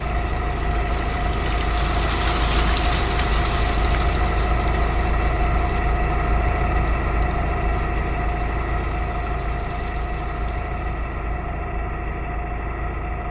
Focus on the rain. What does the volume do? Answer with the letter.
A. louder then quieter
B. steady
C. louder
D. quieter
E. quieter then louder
D.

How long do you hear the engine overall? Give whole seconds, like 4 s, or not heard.
13 s.